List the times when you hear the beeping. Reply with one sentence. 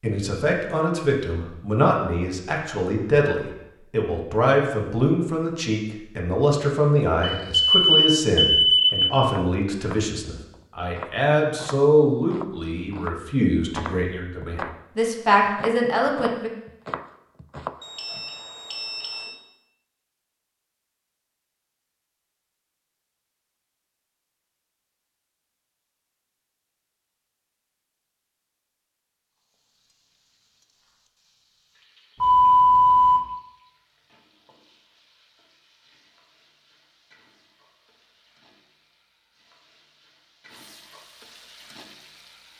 You can hear the beeping from 7.2 to 9.2 s, from 17.8 to 19.3 s and from 32.2 to 33.2 s.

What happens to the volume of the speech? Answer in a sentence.
The loudness of the speech stays about the same.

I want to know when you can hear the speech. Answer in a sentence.
You can hear the speech from 0.0 to 16.5 s.